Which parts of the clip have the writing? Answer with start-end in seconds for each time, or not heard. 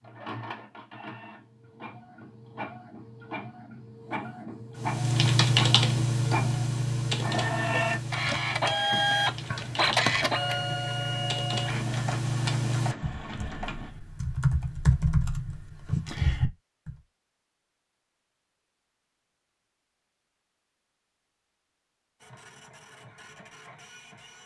not heard.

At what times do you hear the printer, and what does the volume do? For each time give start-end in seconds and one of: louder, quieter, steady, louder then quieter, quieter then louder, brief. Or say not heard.
0.0-13.9 louder then quieter
22.2-24.4 brief.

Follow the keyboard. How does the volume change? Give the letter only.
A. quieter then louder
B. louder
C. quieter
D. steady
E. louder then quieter
A.